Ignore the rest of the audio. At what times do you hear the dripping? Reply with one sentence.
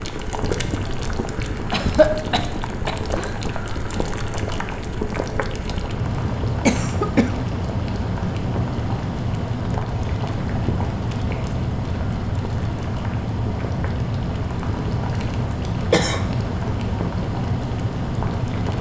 The dripping can't be heard in this clip.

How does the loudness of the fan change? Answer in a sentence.
The loudness of the fan goes up.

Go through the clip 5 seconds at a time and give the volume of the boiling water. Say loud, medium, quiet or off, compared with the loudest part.
loud, loud, medium, medium.